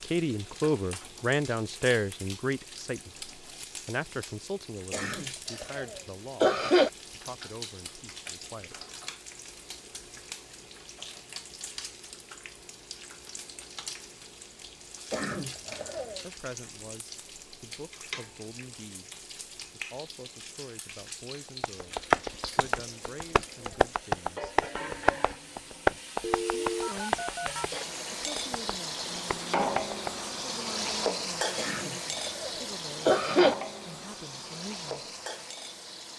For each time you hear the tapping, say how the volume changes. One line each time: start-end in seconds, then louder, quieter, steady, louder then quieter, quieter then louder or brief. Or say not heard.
21.6-30.2 quieter.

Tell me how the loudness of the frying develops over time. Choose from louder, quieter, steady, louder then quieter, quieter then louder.
louder.